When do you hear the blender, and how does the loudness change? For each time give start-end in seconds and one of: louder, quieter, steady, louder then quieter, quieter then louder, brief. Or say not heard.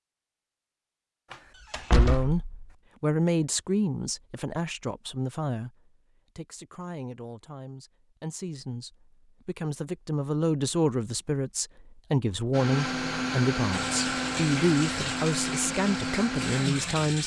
12.5-17.0 steady.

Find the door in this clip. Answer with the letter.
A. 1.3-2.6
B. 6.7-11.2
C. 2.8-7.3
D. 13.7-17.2
A.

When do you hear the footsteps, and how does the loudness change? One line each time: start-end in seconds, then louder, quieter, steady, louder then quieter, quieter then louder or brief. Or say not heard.
not heard.